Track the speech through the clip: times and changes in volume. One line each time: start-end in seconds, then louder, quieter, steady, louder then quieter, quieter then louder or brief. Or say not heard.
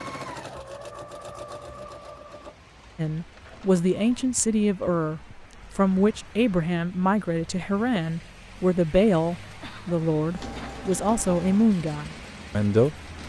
3.0-12.9 steady.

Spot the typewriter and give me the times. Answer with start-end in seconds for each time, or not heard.
not heard.